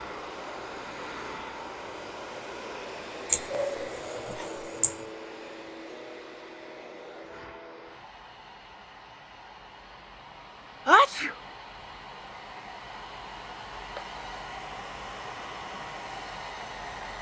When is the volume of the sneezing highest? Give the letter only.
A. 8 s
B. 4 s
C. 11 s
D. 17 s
C.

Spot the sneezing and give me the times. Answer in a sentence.
You can hear the sneezing from 3.3 to 4.9 s and from 10.8 to 11.3 s.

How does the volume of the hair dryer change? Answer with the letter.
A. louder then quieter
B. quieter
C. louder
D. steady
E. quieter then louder
E.